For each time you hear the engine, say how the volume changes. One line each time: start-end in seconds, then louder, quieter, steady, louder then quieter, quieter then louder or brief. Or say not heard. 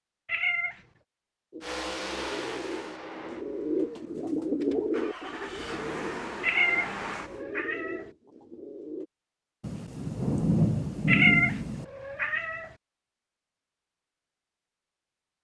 1.6-7.4 quieter then louder.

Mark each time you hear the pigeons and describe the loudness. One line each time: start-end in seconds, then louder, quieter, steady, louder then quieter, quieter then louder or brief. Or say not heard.
1.5-9.1 louder then quieter.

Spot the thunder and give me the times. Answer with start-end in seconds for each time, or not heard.
9.6-11.8.